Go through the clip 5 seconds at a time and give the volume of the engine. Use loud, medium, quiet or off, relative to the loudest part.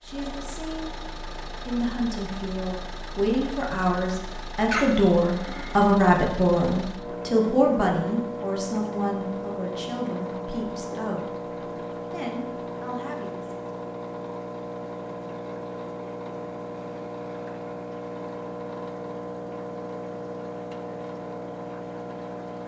medium, loud, loud, loud, loud.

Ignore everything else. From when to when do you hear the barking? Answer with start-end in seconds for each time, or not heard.
4.7-6.0.